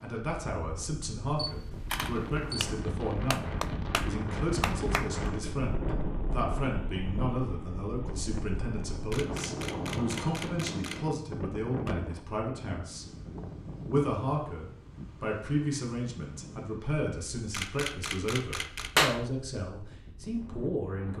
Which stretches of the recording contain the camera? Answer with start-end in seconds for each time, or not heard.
1.4-2.7, 9.1-11.0, 17.5-18.9.